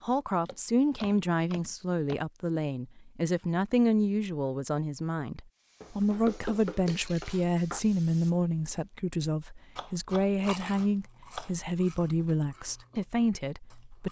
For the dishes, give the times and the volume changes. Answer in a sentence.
You can't hear the dishes here.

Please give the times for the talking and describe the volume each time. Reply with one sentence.
You can hear the talking from 0.0 to 14.0 s, at a steady volume.